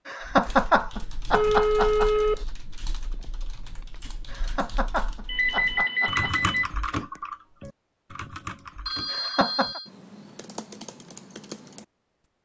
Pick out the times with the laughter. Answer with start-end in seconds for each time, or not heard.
0.1-2.1, 4.2-6.3, 9.1-9.8.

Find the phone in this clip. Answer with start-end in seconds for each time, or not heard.
1.3-2.5, 5.2-6.7, 8.8-9.9.